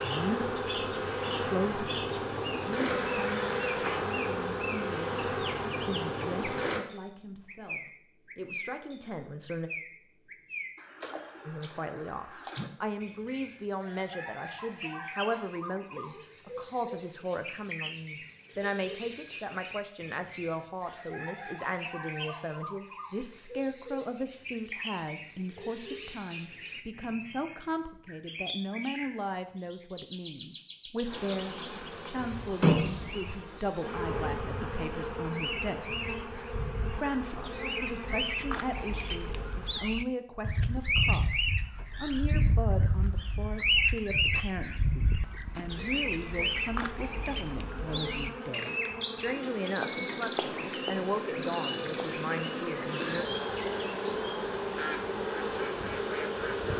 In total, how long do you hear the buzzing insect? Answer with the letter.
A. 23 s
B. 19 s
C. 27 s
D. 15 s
C.